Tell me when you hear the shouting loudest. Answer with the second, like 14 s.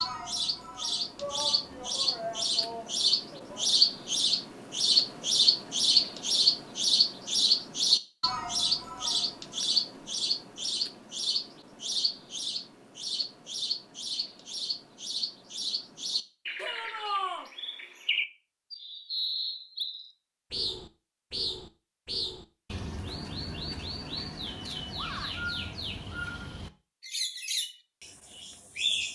17 s.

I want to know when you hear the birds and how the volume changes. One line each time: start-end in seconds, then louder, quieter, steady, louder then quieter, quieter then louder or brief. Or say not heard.
0.0-29.1 quieter.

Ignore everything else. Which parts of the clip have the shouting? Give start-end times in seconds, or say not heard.
1.1-3.7, 16.6-17.5, 24.9-25.5.